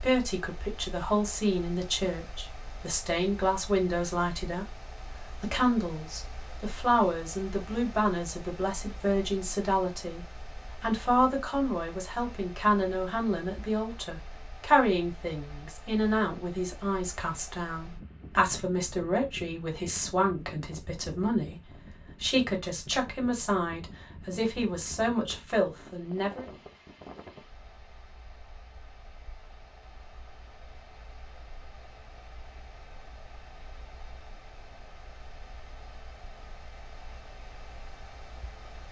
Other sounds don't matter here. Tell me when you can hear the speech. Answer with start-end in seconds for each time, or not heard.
0.0-21.6, 22.1-26.4.